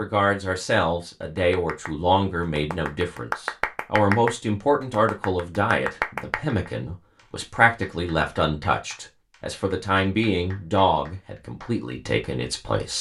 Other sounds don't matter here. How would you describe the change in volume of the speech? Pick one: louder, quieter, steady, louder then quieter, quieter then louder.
steady.